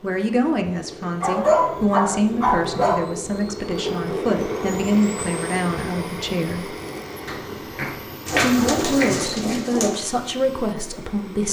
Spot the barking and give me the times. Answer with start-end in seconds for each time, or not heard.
1.2-3.0, 7.2-9.6.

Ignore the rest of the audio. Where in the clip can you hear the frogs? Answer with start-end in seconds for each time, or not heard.
not heard.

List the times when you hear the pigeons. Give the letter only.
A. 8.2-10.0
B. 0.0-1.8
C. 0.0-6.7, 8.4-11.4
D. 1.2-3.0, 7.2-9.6
A.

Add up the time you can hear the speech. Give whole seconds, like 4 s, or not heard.
10 s.